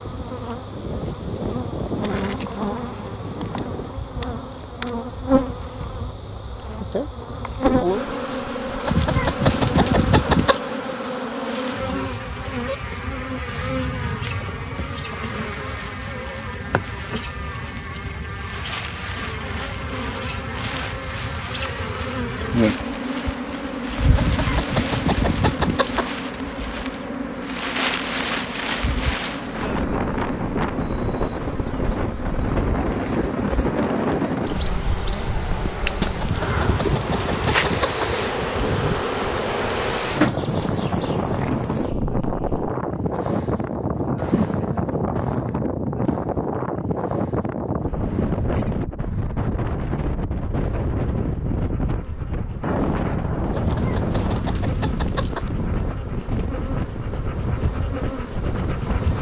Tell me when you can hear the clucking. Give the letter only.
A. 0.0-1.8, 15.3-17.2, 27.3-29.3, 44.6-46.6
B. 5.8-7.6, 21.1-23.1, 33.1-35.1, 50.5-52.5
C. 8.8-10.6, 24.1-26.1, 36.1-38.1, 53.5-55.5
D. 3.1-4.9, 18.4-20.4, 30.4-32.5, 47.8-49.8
C.